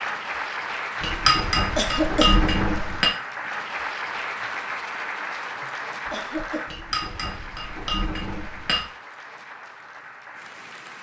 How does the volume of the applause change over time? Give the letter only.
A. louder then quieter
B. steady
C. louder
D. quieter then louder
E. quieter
E.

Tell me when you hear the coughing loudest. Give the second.
2 s.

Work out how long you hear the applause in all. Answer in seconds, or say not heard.
11 s.